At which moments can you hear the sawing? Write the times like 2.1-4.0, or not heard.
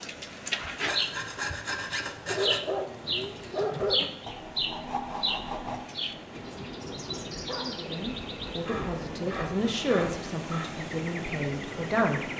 0.8-2.6, 4.2-5.8, 8.7-10.8.